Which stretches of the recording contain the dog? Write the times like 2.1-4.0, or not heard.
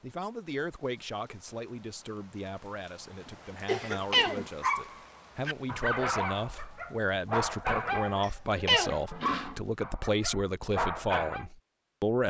4.4-11.4.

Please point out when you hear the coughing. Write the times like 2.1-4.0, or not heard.
3.2-4.5.